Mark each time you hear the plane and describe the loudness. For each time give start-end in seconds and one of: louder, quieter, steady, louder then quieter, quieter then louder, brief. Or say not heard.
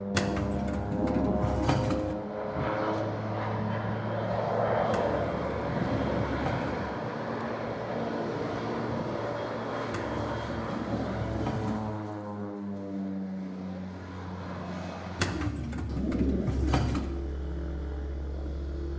0.0-18.9 quieter.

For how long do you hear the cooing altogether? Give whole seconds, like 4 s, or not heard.
8 s.